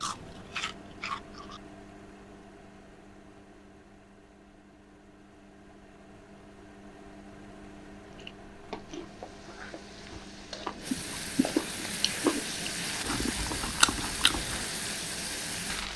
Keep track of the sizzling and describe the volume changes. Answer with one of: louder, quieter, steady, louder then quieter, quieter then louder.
louder.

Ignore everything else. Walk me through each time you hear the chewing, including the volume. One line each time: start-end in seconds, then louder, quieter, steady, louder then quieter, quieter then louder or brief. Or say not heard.
0.0-1.6 brief
8.2-14.6 louder.